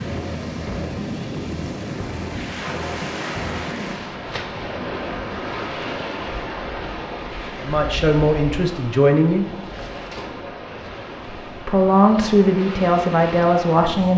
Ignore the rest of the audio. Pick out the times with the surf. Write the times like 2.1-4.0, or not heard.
0.0-14.1.